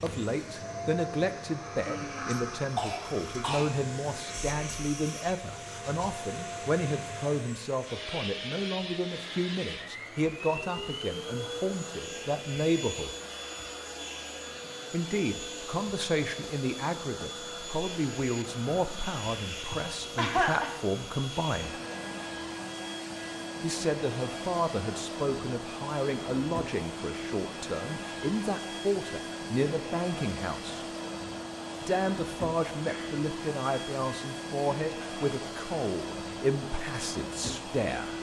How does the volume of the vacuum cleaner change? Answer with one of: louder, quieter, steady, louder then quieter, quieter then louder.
steady.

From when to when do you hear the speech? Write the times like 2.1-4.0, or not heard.
0.0-13.1, 14.9-21.8, 23.6-30.9, 31.8-38.1.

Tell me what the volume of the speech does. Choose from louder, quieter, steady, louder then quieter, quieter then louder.
steady.